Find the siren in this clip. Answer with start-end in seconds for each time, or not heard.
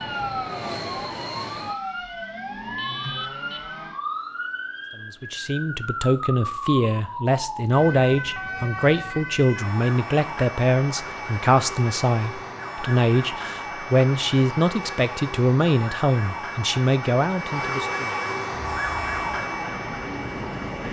0.0-20.8.